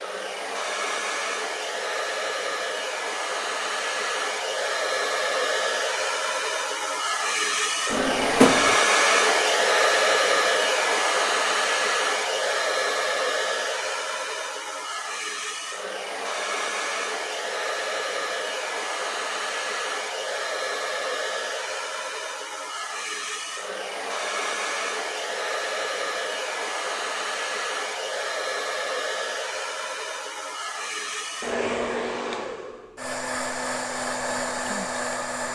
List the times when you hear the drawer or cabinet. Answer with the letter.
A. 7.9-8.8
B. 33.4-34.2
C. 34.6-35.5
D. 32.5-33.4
A.